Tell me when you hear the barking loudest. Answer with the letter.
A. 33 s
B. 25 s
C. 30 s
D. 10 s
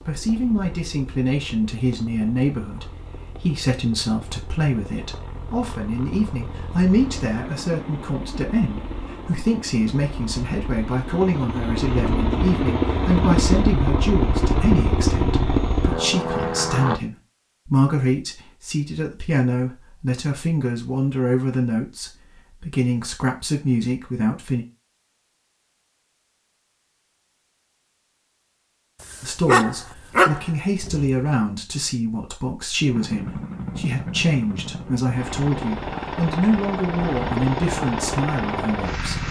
C.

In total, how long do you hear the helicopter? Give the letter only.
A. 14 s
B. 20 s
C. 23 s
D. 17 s
C.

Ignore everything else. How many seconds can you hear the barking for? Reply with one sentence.
The barking can be heard for 2 seconds in total.